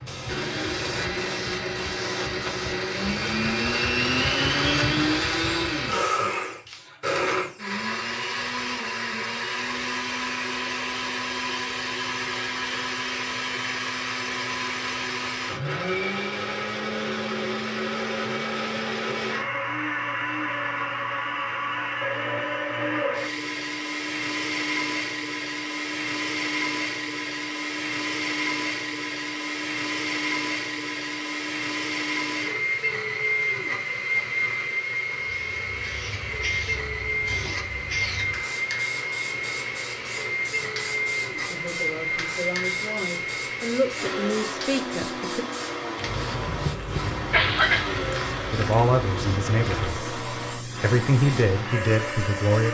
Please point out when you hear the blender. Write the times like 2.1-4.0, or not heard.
0.0-52.6.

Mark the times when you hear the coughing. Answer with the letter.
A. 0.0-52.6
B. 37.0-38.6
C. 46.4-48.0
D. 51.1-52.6
C.